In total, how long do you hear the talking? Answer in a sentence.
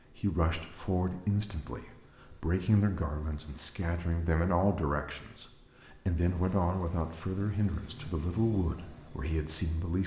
You can hear the talking for 10 seconds altogether.